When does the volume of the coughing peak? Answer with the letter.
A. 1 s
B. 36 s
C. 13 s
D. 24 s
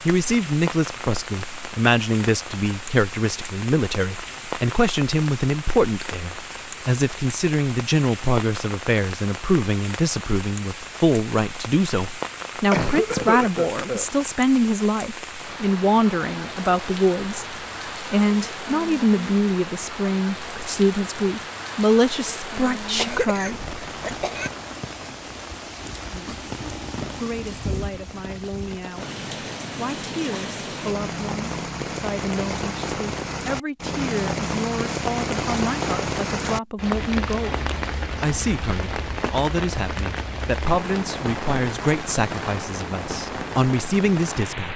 C.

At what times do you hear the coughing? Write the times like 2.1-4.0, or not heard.
12.7-14.1, 22.9-24.5.